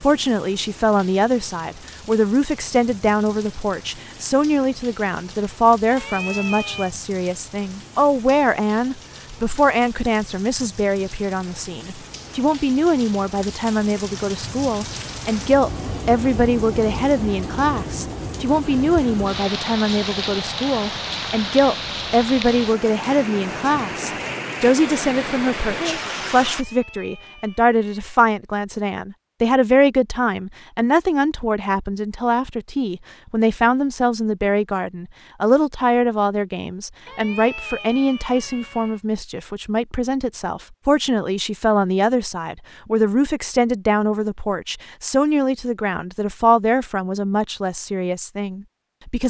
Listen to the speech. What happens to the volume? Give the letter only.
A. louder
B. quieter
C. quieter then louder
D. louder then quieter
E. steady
E.